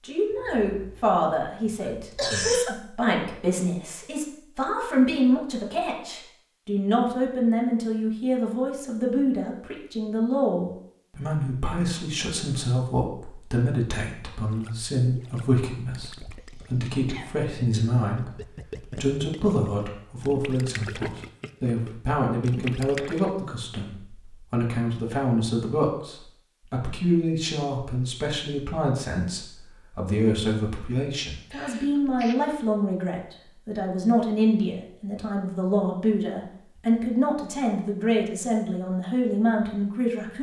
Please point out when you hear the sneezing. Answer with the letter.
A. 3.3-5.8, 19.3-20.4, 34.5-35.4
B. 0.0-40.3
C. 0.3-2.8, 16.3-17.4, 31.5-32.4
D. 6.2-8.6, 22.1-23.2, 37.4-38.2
C.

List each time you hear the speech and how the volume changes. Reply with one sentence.
You can hear the speech from 0.0 to 40.3 s, at a steady volume.